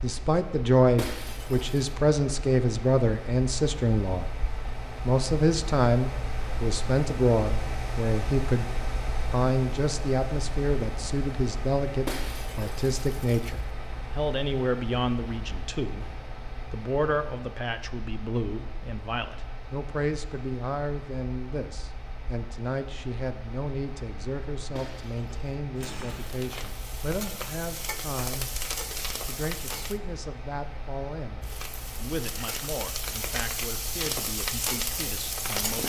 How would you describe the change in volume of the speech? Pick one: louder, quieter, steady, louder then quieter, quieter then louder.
quieter.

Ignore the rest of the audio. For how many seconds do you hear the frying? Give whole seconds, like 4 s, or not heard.
9 s.